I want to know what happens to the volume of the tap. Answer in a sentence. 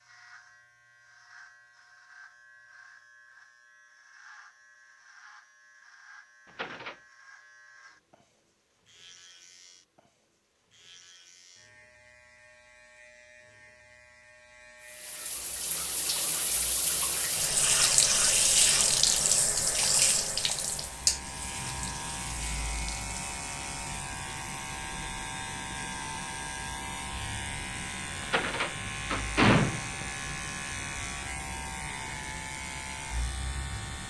The volume of the tap goes up, then down.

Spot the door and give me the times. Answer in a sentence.
The door can be heard from 6.5 to 7.0 s and from 28.2 to 30.1 s.